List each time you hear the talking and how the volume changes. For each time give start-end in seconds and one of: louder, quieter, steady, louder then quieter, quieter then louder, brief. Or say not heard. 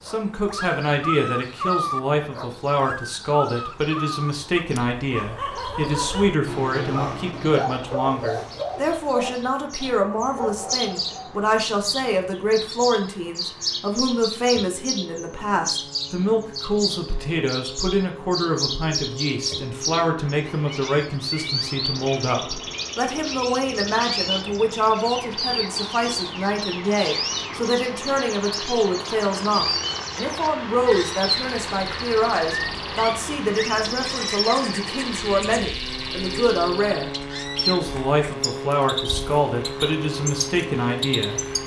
0.1-41.4 steady.